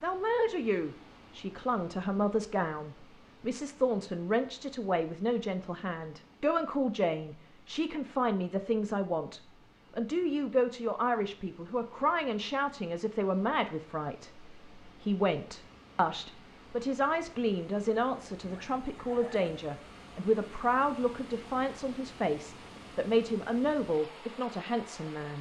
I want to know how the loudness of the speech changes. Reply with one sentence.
The loudness of the speech stays about the same.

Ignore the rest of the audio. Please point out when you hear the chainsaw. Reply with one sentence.
The chainsaw can't be heard in this clip.